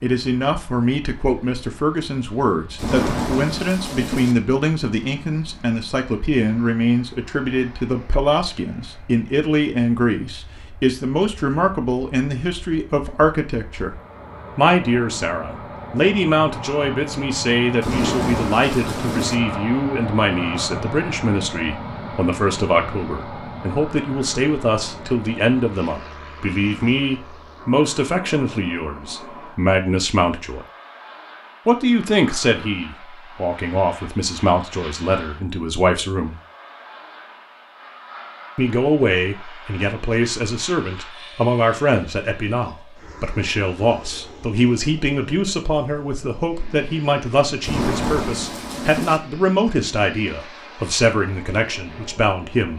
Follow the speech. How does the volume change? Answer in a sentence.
The volume of the speech stays about the same.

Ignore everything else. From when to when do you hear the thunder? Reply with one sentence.
The thunder can be heard from 2.8 to 4.3 s, from 17.8 to 19.4 s and from 47.6 to 49.2 s.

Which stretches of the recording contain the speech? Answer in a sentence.
The speech can be heard from 0.0 to 13.9 s, from 14.6 to 30.6 s, from 31.6 to 36.4 s and from 38.5 to 52.7 s.